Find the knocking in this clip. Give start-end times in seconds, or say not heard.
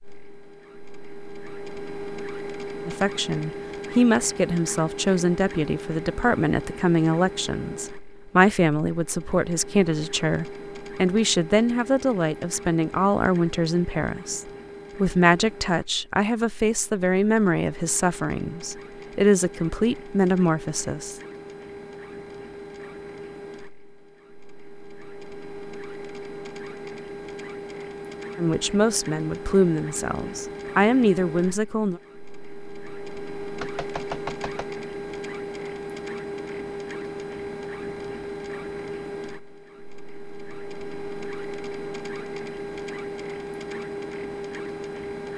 33.6-34.6.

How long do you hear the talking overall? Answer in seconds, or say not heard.
22 s.